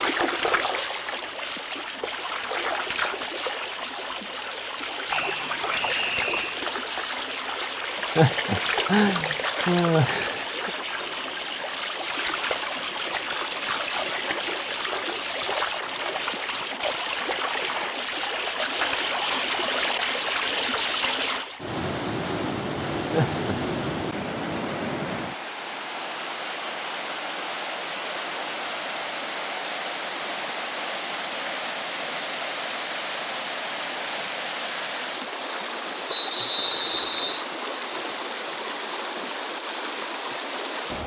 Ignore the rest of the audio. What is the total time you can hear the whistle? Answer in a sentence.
You can hear the whistle for 3 seconds altogether.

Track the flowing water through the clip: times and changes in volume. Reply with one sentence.
The flowing water can be heard from 0.0 to 41.0 s, at a steady volume.